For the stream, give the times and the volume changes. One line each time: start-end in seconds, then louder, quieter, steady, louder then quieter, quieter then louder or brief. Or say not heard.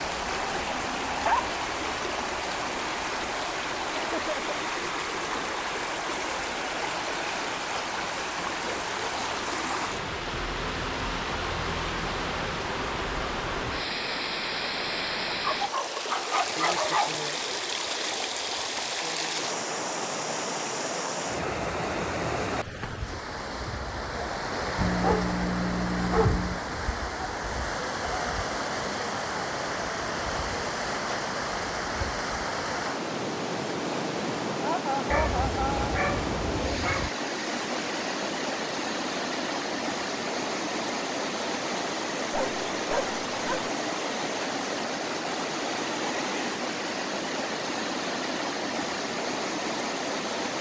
0.0-50.5 steady.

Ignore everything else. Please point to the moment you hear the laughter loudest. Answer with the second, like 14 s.
35 s.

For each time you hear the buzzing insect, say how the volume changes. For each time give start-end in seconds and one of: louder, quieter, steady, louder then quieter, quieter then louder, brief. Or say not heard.
not heard.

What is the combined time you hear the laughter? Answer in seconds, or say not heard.
2 s.